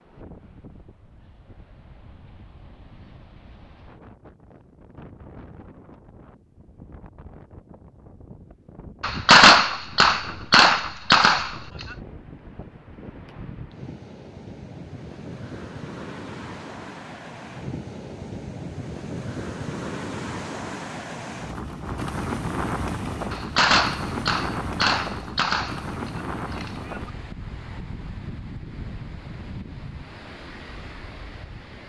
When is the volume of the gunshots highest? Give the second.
9 s.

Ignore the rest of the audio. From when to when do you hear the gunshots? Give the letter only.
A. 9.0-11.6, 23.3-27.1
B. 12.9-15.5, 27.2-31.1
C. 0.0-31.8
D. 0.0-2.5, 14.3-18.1
A.